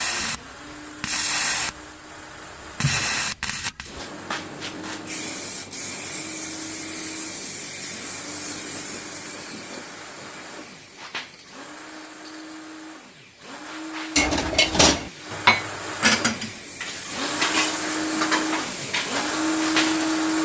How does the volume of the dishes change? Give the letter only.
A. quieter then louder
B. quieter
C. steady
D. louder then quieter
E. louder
B.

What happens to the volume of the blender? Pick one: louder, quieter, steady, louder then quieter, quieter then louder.
louder.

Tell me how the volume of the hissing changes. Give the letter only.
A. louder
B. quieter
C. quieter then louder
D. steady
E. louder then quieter
C.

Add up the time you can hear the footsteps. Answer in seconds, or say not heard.
not heard.